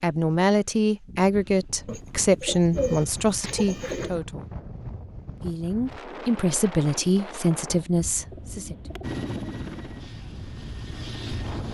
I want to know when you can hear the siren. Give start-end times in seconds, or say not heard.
not heard.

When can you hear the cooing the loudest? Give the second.
3 s.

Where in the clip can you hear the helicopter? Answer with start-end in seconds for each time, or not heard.
9.0-11.6.